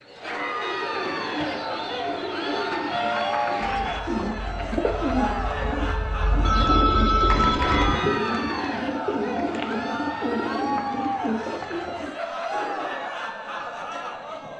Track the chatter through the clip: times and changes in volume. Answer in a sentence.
You can hear the chatter from 0.1 to 14.5 s, at a steady volume.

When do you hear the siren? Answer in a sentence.
The siren can be heard from 2.9 to 8.0 s.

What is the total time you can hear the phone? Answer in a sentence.
The phone can be heard for 2 seconds in total.